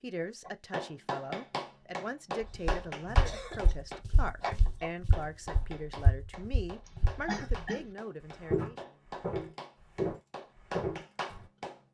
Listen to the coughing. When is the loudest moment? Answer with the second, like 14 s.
7 s.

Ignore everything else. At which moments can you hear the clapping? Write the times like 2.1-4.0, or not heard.
0.5-11.9.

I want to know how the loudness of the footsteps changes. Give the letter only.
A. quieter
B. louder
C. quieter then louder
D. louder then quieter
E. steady
B.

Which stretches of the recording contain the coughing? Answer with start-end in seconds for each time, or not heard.
2.5-3.8, 6.8-7.9.